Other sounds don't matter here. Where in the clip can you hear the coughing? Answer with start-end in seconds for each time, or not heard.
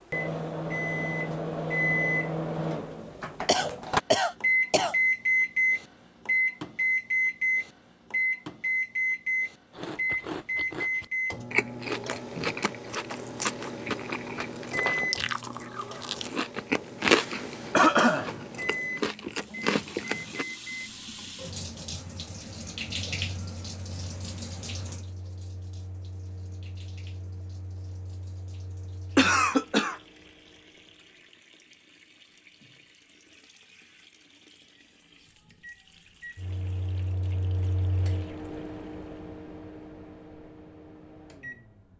3.5-5.0, 17.7-18.3, 29.1-29.9.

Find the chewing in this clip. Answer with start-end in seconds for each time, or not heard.
9.7-20.4.